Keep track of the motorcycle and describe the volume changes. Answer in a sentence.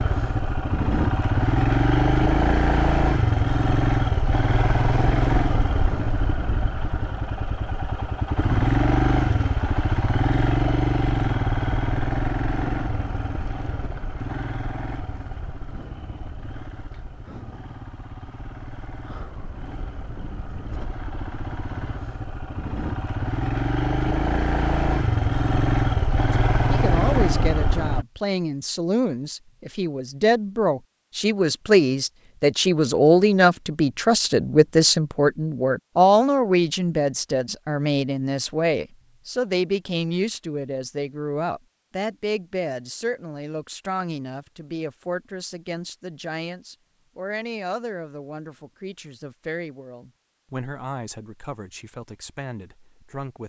The loudness of the motorcycle goes down, then up.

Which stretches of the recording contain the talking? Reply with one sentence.
You can hear the talking from 26.3 to 53.4 s.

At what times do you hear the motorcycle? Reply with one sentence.
The motorcycle can be heard from 0.0 to 28.1 s.